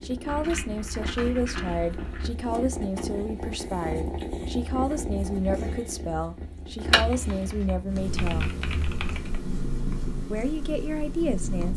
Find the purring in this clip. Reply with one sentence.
You can hear the purring from 0.0 to 11.7 s.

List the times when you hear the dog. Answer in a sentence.
The dog can't be heard in this clip.